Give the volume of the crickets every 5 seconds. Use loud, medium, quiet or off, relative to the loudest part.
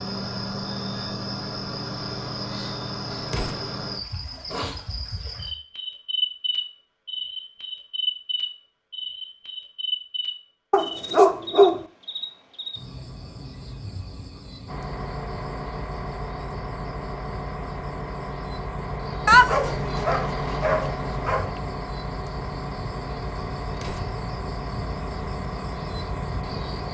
loud, loud, medium, quiet, medium, medium.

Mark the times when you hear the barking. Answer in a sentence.
The barking can be heard from 10.7 to 11.8 s and from 19.2 to 21.5 s.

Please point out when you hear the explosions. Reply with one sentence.
The explosions can be heard from 3.2 to 3.8 s and from 23.8 to 24.2 s.